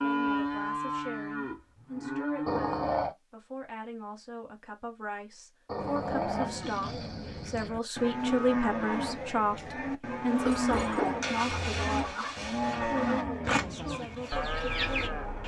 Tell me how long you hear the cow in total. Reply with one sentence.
You can hear the cow for 13 seconds altogether.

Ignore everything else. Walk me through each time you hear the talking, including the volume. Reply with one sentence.
You can hear the talking from 0.0 to 15.4 s, getting louder then quieter.